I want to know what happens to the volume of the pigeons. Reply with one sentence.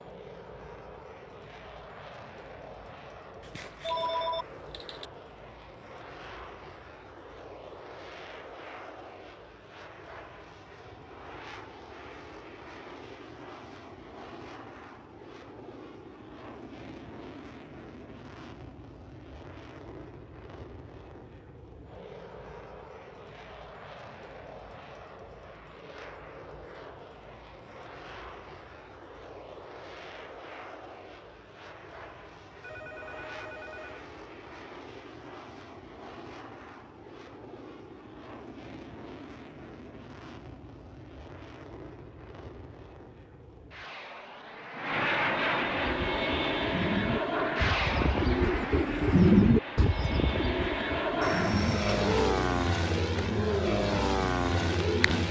The loudness of the pigeons goes up, then down.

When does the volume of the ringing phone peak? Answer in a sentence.
The loudest moment of the ringing phone is at 4 seconds.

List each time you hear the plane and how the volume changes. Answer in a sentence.
You can hear the plane from 0.0 to 55.2 s, getting louder.